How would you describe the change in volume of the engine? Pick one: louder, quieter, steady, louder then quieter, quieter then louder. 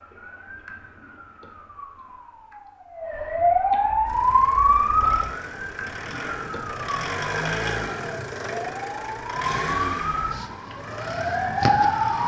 louder then quieter.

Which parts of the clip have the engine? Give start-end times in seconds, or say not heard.
4.0-12.2.